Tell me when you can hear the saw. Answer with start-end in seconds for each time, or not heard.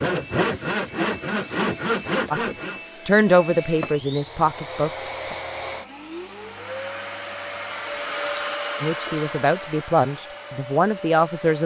0.0-2.8.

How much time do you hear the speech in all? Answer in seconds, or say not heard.
6 s.